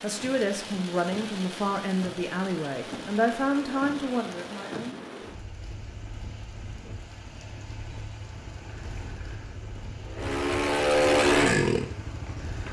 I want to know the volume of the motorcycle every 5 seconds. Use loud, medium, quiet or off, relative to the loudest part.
off, quiet, loud.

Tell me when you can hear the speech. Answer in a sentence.
The speech can be heard from 0.0 to 5.0 s.